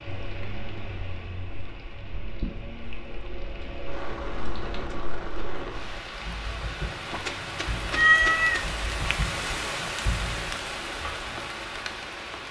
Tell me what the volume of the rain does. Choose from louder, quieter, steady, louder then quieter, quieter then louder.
louder.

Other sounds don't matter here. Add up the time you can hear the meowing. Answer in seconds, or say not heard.
2 s.